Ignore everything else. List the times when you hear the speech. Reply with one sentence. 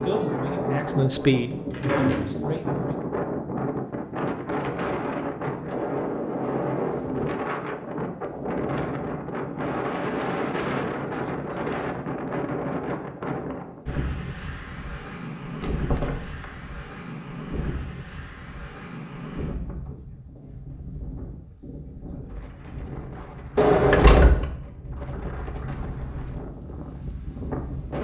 The speech can be heard from 0.0 to 3.0 s.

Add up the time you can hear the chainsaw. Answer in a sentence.
The chainsaw can't be heard in this clip.